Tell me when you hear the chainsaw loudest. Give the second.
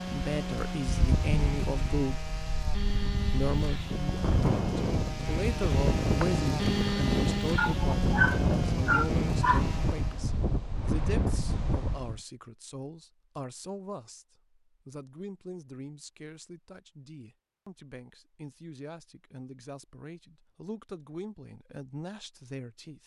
7 s.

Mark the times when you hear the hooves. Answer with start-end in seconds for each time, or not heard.
not heard.